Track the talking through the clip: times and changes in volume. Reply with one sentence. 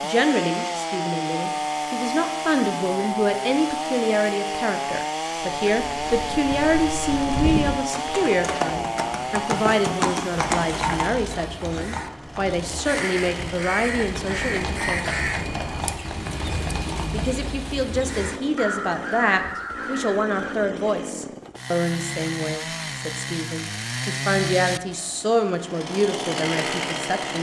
You can hear the talking from 0.0 to 15.2 s, at a steady volume; and from 17.1 to 27.3 s, at a steady volume.